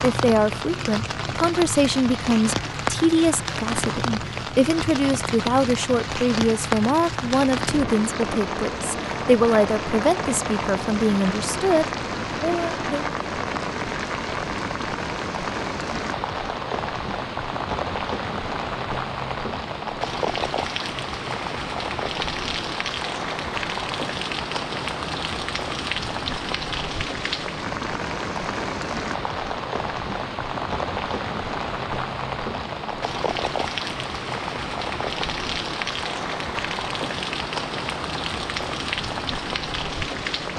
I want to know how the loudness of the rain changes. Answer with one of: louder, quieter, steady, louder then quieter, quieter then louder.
steady.